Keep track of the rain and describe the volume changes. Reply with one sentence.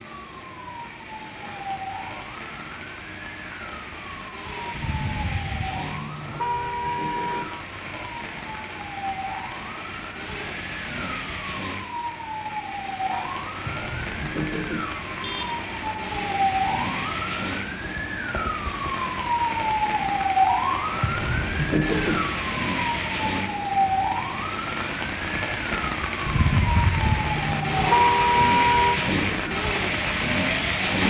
The volume of the rain goes up.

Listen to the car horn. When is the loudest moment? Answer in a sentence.
The volume of the car horn peaks at 28 seconds.